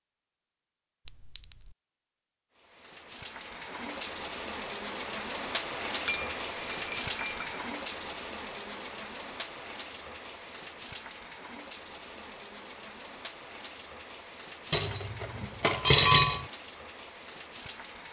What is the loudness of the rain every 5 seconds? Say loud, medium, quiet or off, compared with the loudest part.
loud, loud, medium, medium.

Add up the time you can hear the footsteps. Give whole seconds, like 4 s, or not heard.
not heard.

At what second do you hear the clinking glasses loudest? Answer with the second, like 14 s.
16 s.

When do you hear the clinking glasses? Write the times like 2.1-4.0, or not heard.
1.1-1.6, 6.0-7.6, 14.7-16.4.